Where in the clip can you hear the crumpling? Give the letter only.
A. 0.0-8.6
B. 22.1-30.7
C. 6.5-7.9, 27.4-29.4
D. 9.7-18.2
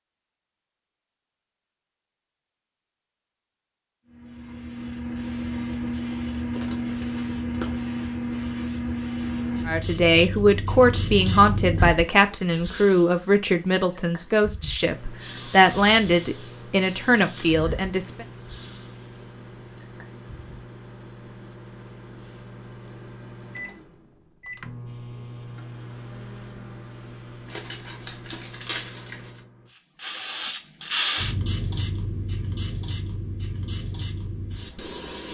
C.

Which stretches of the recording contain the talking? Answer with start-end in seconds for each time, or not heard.
9.7-18.2.